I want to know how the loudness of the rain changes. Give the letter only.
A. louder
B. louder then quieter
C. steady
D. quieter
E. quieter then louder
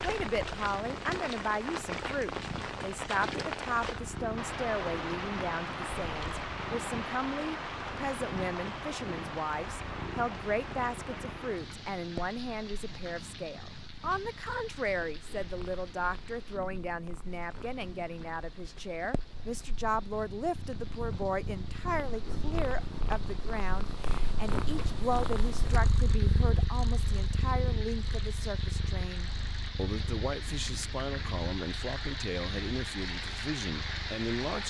E.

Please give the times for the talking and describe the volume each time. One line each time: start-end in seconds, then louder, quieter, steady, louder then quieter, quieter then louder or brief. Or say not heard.
0.0-34.6 steady.